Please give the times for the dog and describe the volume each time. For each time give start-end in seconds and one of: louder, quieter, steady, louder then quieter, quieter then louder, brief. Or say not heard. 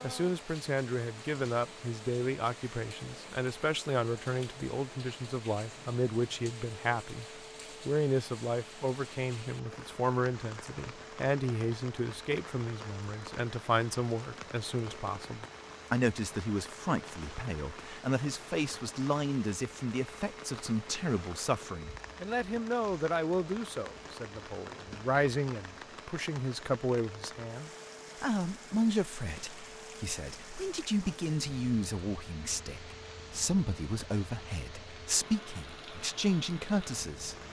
not heard.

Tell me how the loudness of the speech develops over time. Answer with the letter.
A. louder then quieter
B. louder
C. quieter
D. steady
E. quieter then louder
D.